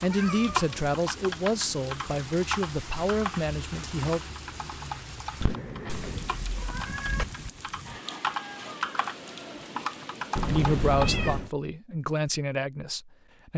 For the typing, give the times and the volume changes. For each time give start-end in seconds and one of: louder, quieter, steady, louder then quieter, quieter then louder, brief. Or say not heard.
0.0-11.1 quieter then louder.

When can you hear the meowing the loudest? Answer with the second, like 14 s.
11 s.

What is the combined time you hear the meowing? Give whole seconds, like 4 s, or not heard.
4 s.